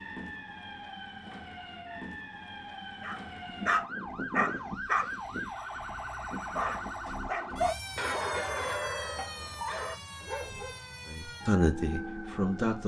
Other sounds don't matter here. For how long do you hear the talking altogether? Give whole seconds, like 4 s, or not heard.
2 s.